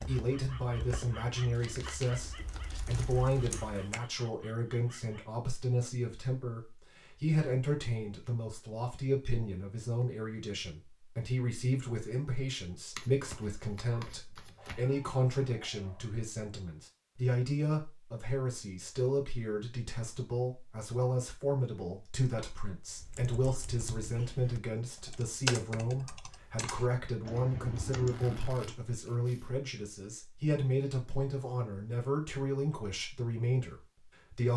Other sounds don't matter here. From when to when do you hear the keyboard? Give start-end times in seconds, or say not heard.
0.0-4.0, 22.9-28.8.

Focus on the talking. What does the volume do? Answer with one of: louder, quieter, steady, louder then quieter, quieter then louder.
steady.